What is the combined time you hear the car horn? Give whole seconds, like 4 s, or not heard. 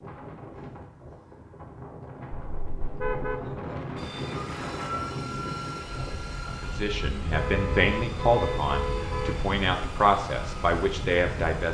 3 s.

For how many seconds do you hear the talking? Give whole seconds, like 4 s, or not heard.
5 s.